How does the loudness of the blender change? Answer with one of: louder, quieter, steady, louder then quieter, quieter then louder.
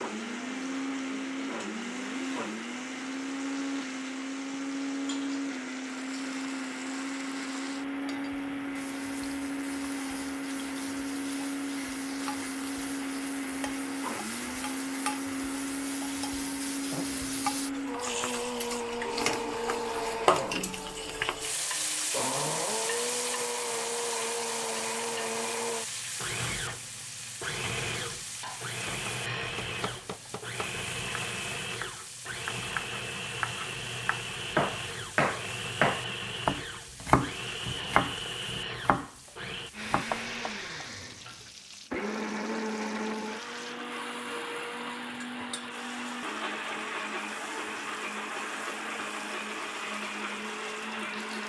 steady.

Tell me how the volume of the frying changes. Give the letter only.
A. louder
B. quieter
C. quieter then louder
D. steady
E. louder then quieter
E.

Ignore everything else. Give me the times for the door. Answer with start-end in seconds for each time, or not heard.
not heard.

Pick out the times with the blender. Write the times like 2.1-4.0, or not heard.
0.0-51.4.